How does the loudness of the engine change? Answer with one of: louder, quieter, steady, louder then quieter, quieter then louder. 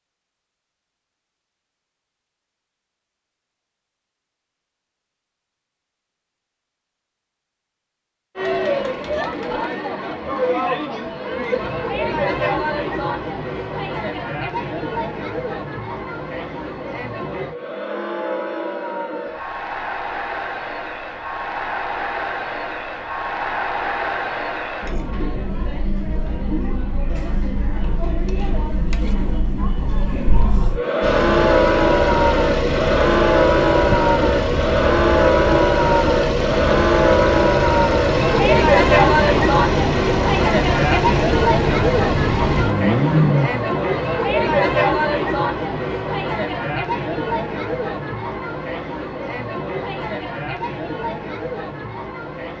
steady.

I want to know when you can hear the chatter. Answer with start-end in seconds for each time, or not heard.
8.3-52.5.